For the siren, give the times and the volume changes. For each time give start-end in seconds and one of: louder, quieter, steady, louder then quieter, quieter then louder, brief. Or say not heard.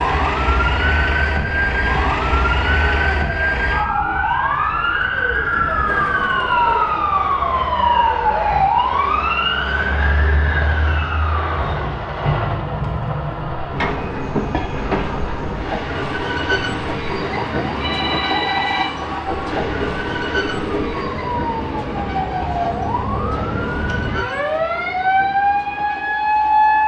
0.0-26.8 quieter then louder.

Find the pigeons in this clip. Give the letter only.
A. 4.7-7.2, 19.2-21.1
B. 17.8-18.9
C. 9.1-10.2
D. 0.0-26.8
A.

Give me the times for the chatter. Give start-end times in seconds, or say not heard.
not heard.